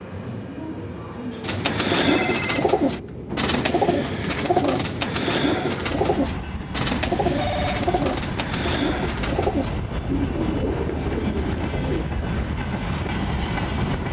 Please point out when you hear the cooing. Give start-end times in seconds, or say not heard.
1.4-12.1.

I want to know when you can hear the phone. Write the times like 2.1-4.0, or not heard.
2.0-2.6, 7.2-7.8.